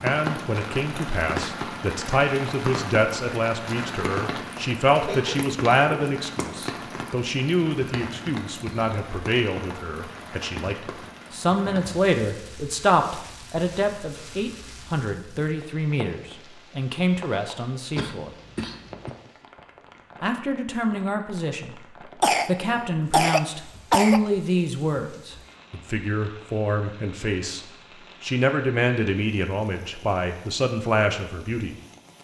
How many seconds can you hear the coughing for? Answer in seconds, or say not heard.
4 s.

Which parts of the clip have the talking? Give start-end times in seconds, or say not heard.
0.0-18.3, 20.2-21.8, 22.4-27.6, 28.2-31.8.